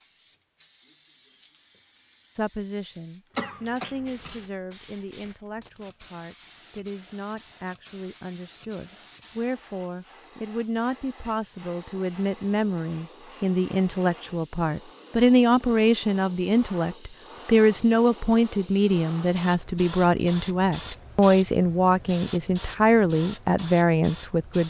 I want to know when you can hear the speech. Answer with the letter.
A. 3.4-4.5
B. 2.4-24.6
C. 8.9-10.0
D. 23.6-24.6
B.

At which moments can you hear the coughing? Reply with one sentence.
The coughing can be heard from 3.4 to 4.5 s.